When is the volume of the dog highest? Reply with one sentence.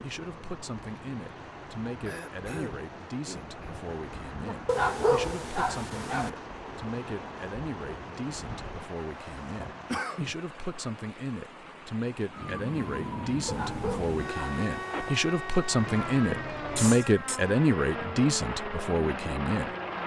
The loudest moment of the dog is at 5 seconds.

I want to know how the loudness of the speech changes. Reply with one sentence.
The volume of the speech goes up.